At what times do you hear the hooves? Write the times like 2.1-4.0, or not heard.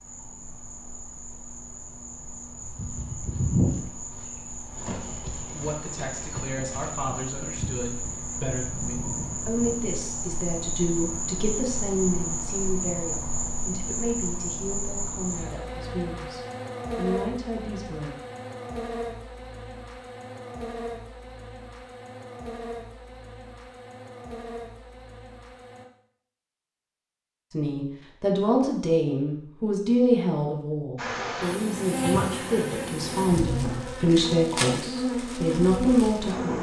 2.6-9.9.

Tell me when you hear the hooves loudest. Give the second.
4 s.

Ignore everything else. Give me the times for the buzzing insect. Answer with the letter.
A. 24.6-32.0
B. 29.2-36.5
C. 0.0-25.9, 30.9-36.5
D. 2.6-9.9
C.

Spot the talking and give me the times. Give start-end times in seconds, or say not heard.
5.5-18.1, 27.5-36.5.